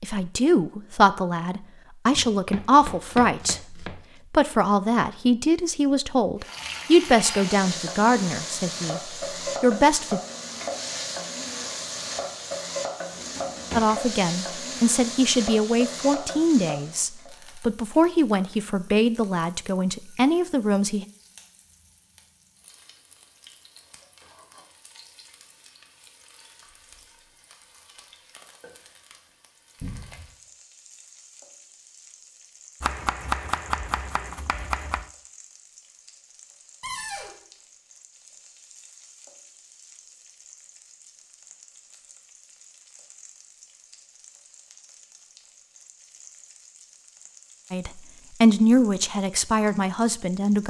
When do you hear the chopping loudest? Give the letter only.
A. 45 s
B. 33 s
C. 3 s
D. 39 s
B.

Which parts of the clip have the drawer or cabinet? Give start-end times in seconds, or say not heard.
13.1-13.9, 29.8-30.3, 36.8-37.4.